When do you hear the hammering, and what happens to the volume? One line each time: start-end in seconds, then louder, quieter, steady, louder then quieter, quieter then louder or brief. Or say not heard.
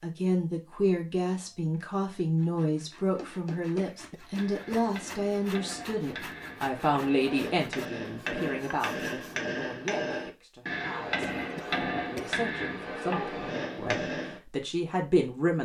3.0-14.4 louder.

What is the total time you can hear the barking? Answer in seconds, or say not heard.
not heard.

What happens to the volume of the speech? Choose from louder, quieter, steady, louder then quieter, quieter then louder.
quieter then louder.